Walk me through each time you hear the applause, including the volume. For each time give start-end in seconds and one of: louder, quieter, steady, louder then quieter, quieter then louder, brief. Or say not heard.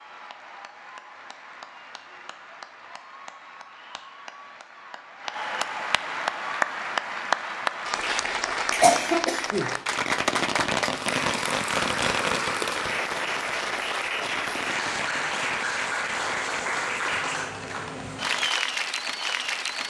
0.0-19.8 louder.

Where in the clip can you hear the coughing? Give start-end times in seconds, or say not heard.
8.0-9.8.